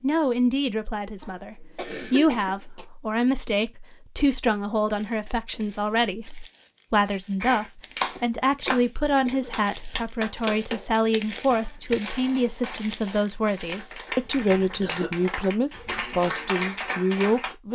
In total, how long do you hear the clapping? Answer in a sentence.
The clapping can be heard for 10 seconds in total.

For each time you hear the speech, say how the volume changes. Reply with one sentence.
You can hear the speech from 0.0 to 17.6 s, at a steady volume.